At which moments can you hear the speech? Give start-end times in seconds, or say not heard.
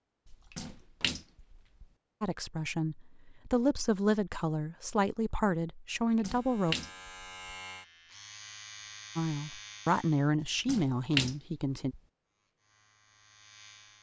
2.2-6.8, 9.2-11.9.